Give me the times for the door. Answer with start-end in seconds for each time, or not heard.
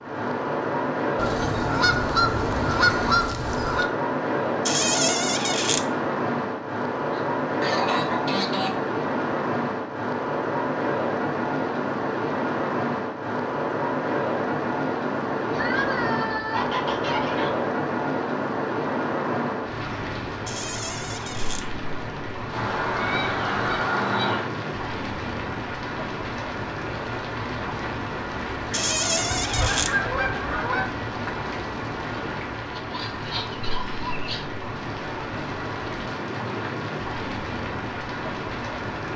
4.7-5.8, 20.4-21.6, 28.7-29.9.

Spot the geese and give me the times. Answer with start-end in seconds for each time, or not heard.
1.1-3.9, 7.1-8.8, 15.5-17.5, 22.5-24.5, 29.4-30.9, 32.7-34.5.